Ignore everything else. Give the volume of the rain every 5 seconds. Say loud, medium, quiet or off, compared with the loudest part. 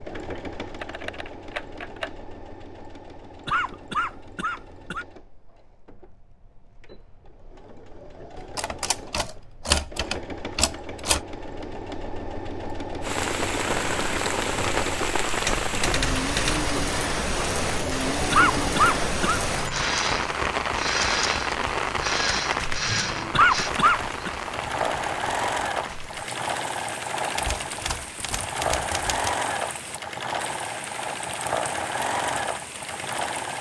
off, off, loud, loud, loud, quiet, quiet.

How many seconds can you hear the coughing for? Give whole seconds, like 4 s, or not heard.
4 s.